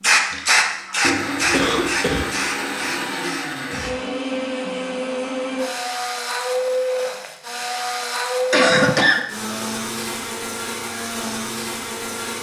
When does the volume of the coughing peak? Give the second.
9 s.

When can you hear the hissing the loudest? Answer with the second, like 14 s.
1 s.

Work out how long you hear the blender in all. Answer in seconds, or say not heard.
12 s.